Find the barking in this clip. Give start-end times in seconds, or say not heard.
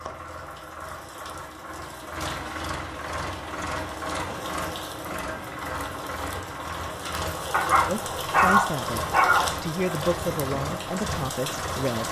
7.5-9.5.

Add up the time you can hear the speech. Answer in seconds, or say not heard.
4 s.